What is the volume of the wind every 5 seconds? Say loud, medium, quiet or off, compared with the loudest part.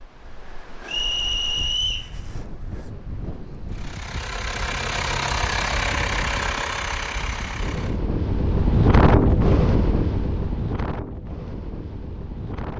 quiet, loud, medium.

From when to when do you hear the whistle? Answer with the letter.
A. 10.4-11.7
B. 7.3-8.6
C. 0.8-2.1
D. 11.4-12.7
C.